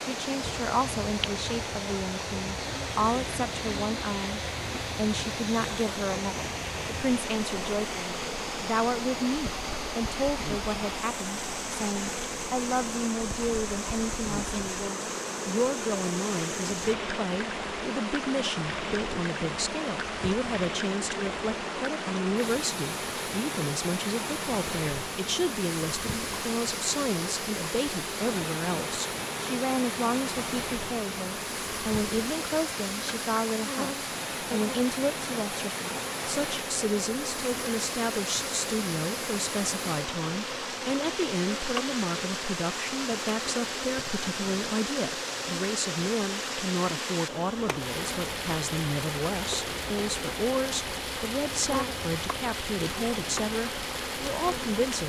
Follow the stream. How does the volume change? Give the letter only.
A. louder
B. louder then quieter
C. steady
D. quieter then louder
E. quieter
C.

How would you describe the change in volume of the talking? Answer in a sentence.
The volume of the talking stays about the same.